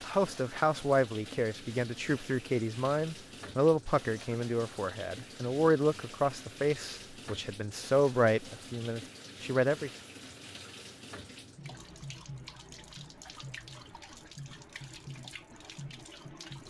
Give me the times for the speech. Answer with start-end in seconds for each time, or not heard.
0.0-9.9.